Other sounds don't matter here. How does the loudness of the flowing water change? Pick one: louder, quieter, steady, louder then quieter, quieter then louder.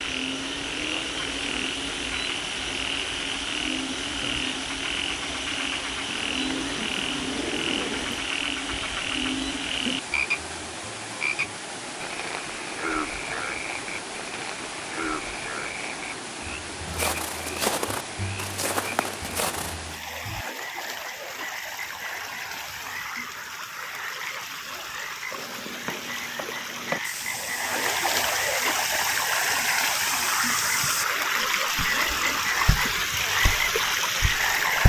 louder.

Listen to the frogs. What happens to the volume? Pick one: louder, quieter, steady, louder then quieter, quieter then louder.
quieter then louder.